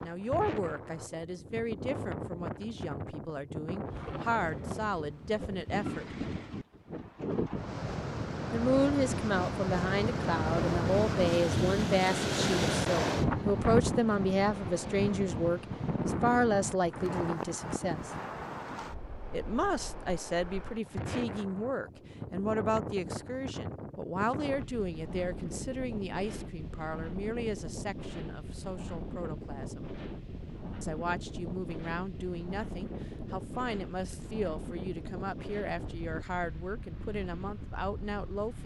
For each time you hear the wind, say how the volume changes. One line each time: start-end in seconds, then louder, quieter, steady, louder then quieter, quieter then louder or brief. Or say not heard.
0.0-38.6 louder then quieter.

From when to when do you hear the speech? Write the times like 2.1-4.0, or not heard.
0.0-6.0, 8.5-18.1, 19.3-29.9, 30.8-38.6.